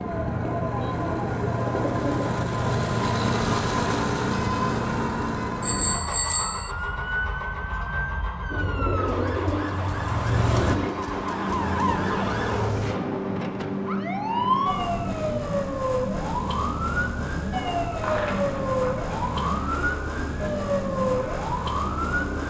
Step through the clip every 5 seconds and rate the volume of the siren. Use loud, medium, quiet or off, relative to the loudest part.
medium, medium, loud, loud, loud.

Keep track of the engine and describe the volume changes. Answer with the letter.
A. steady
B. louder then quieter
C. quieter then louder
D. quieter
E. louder
D.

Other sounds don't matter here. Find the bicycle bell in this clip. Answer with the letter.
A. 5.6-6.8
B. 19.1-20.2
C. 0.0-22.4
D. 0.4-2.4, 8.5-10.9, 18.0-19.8
A.